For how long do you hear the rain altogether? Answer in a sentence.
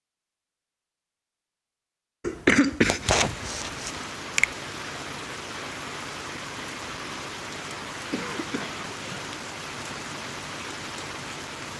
The rain can be heard for 9 seconds in total.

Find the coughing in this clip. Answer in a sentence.
You can hear the coughing from 2.2 to 4.0 s and from 8.1 to 9.3 s.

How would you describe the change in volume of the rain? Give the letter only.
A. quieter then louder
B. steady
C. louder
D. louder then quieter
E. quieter
B.